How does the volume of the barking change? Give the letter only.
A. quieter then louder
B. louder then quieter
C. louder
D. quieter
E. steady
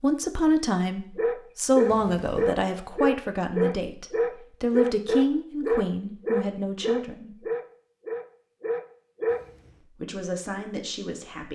D.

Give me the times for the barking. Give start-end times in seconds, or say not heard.
1.1-9.4.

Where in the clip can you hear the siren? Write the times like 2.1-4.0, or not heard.
not heard.